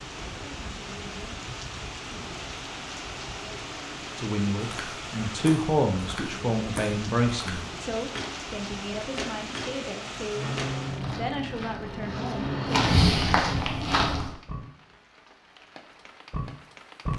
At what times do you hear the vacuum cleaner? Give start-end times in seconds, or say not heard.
10.3-12.8.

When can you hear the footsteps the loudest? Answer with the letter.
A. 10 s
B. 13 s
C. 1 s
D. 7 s
B.